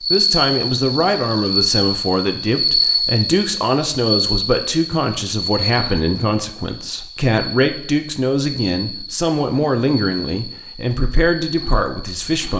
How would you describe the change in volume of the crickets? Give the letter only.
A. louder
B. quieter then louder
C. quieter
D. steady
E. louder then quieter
C.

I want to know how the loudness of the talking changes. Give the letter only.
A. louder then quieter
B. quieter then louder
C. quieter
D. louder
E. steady
E.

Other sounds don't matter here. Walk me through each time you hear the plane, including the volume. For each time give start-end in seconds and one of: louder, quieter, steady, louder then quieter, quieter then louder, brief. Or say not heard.
not heard.